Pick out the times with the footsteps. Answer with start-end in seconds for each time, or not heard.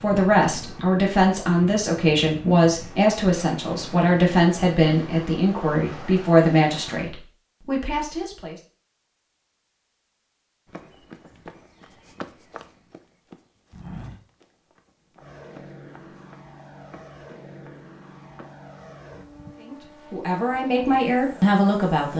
10.7-18.4.